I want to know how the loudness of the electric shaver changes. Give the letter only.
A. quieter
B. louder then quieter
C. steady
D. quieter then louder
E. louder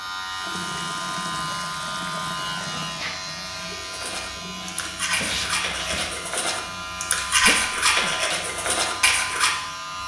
C.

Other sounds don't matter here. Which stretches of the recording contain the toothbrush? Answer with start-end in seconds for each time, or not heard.
3.8-9.6.